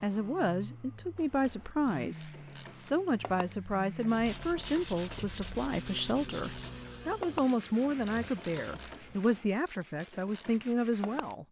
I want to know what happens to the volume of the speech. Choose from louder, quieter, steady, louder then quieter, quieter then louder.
steady.